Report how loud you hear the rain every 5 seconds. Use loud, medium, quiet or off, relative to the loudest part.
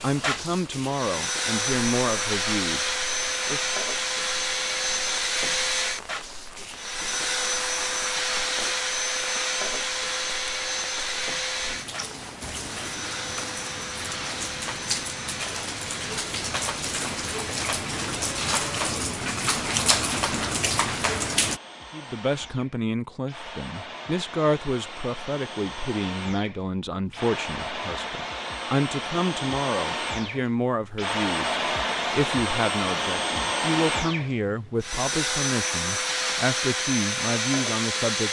quiet, quiet, medium, loud, loud, off, off, off.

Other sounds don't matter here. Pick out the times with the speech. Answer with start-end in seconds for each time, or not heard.
0.0-3.6, 21.9-38.2.